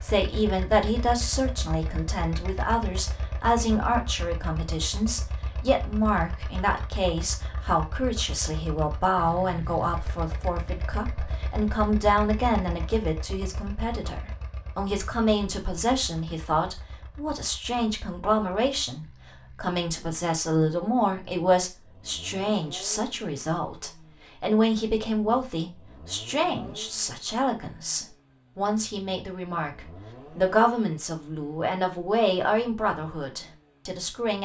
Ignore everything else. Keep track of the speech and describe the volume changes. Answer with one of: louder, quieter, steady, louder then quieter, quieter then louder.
steady.